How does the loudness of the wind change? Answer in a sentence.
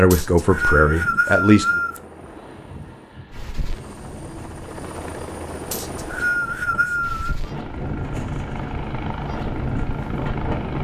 The volume of the wind goes up.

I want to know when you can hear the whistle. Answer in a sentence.
The whistle can be heard from 0.1 to 2.0 s and from 5.7 to 7.3 s.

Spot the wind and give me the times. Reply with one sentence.
You can hear the wind from 2.1 to 10.7 s.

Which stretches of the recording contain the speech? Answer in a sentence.
The speech can be heard from 0.0 to 1.8 s.